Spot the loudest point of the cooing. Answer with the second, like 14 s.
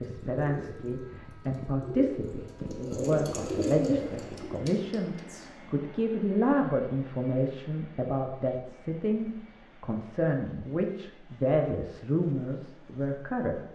4 s.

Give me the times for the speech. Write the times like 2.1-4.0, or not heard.
0.0-13.7.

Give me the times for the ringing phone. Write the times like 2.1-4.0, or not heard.
not heard.